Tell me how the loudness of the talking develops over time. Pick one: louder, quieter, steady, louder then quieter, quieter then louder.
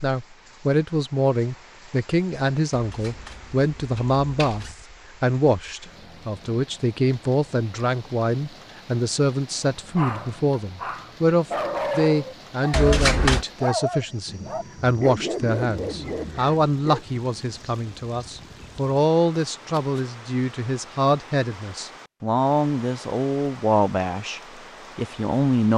steady.